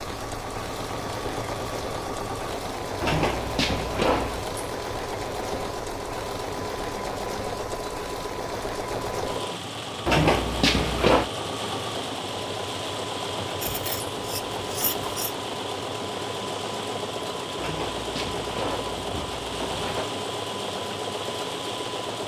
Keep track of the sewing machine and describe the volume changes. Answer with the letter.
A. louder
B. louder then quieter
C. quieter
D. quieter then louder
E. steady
E.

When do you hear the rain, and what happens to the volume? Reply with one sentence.
The rain can be heard from 0.0 to 22.2 s, at a steady volume.